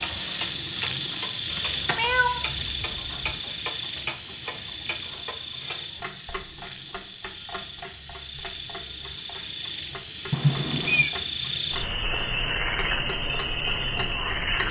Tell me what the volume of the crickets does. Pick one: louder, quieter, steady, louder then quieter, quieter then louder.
quieter then louder.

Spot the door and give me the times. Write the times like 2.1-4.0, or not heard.
not heard.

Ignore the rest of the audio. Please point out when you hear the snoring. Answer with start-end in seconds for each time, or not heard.
not heard.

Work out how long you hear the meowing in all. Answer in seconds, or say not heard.
2 s.